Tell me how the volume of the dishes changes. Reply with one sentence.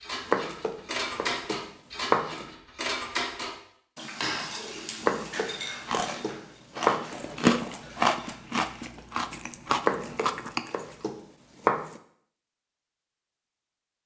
The loudness of the dishes goes down.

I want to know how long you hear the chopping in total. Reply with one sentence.
The chopping can be heard for 7 seconds in total.